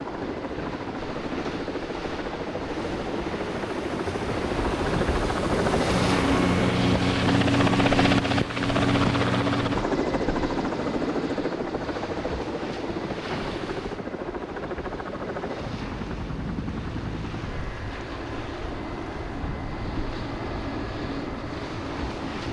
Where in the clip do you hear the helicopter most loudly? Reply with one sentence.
The loudest moment of the helicopter is at 8 seconds.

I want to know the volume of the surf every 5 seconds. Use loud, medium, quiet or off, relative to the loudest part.
medium, loud, medium, medium, medium.